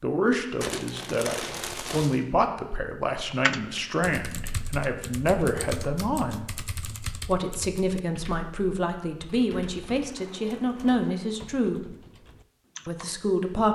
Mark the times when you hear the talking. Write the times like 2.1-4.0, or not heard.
0.0-6.5, 7.2-11.9, 12.8-13.6.